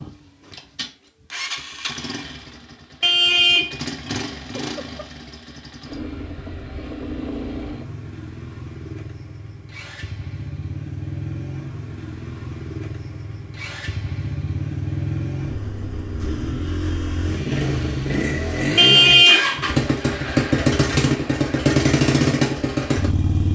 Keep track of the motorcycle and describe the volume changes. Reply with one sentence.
The volume of the motorcycle goes up.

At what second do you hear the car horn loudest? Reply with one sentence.
The volume of the car horn peaks at 19 seconds.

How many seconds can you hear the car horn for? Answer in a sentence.
The car horn can be heard for 2 seconds in total.